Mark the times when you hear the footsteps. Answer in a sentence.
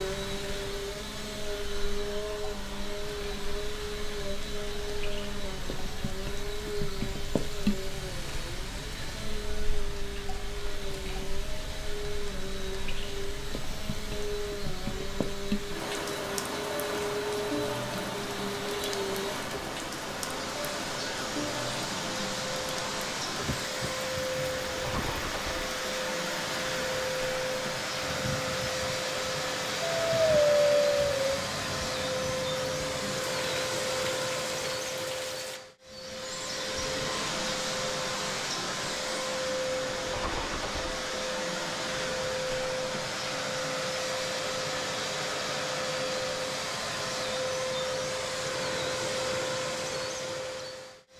The footsteps can't be heard in this clip.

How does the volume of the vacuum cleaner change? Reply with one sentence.
The volume of the vacuum cleaner goes up.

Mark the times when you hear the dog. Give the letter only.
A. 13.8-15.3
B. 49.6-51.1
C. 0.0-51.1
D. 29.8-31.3
D.